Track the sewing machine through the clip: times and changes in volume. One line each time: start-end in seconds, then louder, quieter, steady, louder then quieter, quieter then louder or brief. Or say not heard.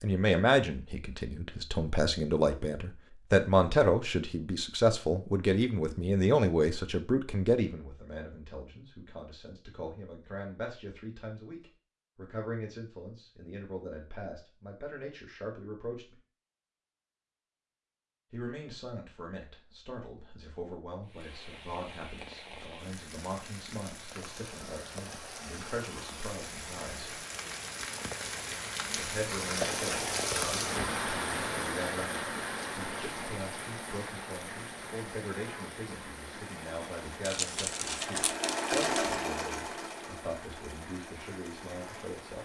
36.3-42.3 louder then quieter.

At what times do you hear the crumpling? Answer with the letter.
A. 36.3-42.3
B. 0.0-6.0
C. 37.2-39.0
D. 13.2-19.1
C.